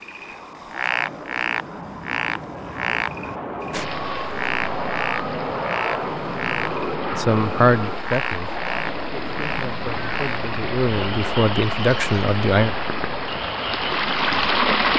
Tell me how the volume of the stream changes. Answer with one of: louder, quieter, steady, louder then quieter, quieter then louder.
louder.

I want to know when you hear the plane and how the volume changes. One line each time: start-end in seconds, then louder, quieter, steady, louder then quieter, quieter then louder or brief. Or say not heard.
0.0-14.9 louder then quieter.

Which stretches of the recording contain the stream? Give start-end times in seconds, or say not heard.
3.7-14.9.